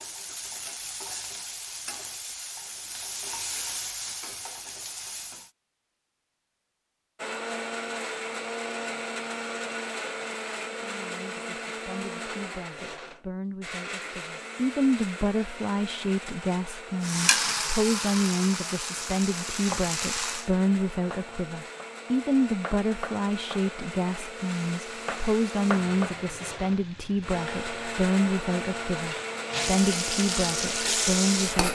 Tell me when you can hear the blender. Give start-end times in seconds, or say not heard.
7.2-31.7.